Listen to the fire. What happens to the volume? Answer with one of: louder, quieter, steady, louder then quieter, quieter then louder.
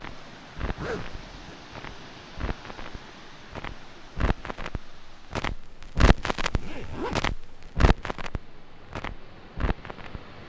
louder then quieter.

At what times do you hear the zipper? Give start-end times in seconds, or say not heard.
0.8-1.6, 6.4-7.3.